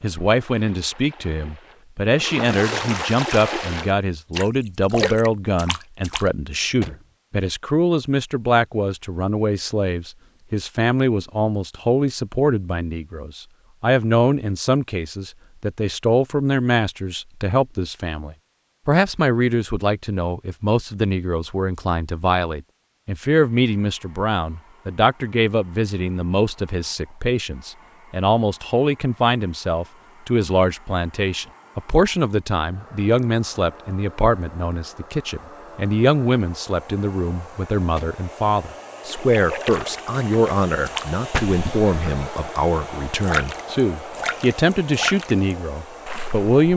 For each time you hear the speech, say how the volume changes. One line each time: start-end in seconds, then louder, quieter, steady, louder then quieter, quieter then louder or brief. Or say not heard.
0.0-46.7 steady.